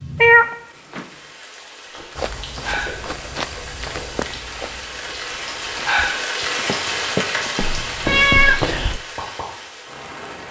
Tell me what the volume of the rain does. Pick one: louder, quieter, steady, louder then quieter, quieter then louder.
louder then quieter.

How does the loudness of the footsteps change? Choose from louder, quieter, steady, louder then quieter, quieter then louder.
quieter then louder.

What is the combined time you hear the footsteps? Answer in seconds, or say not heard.
7 s.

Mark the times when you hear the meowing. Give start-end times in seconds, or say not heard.
0.2-1.1, 7.7-9.0.